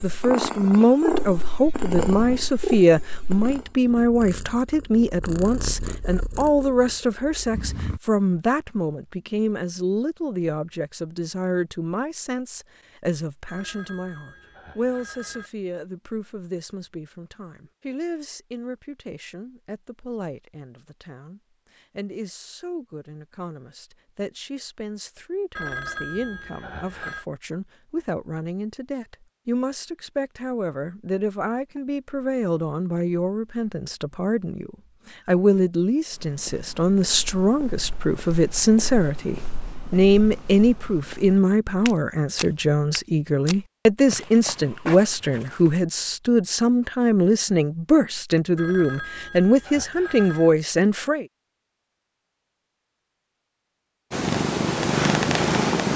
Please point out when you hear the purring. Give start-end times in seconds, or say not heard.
0.0-8.0, 54.1-55.9.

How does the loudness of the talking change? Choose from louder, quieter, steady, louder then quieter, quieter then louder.
quieter then louder.